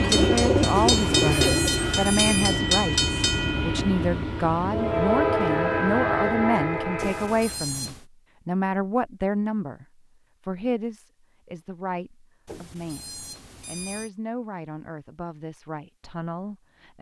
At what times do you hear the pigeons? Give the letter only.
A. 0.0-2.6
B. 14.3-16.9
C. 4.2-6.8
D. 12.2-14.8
A.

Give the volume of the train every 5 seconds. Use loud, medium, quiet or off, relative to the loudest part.
loud, loud, off, off.